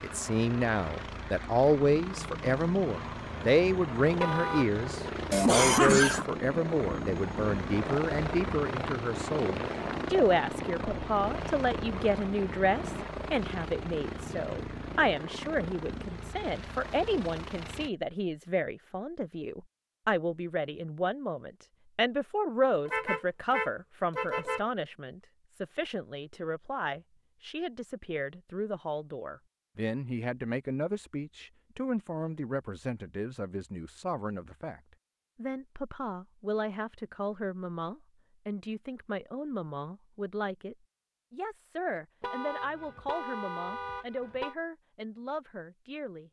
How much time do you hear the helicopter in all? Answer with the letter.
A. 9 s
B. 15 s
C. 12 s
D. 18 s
D.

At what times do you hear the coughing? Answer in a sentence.
The coughing can be heard from 5.3 to 6.2 s.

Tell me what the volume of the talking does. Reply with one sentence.
The volume of the talking goes down.